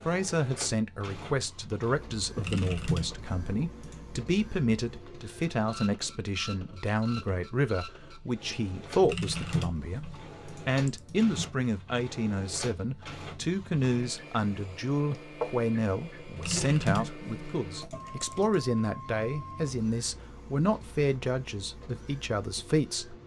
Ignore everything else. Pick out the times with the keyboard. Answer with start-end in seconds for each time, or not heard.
2.4-4.2, 9.0-11.5, 16.4-18.6.